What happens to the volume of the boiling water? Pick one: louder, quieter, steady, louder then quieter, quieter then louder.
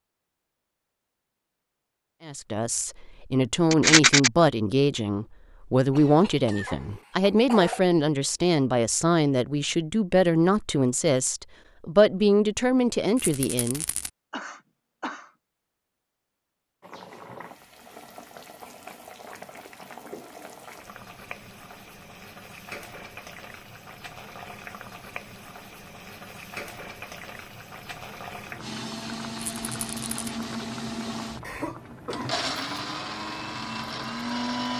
steady.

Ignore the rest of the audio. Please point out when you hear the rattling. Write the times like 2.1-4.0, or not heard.
3.7-4.3, 13.2-14.1, 29.6-30.3.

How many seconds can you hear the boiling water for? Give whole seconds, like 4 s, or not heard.
18 s.